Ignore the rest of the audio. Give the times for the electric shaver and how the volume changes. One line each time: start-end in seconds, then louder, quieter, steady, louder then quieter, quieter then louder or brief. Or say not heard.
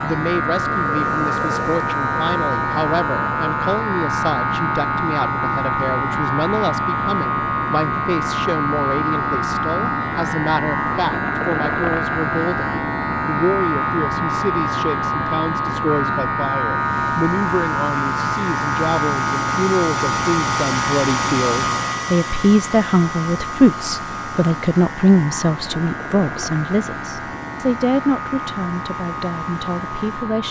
0.0-30.4 quieter.